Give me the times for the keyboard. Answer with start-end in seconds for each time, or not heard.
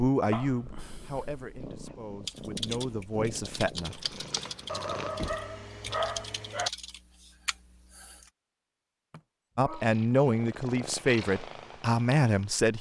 2.2-8.3.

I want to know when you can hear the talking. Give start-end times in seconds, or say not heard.
0.0-4.0, 9.6-12.7.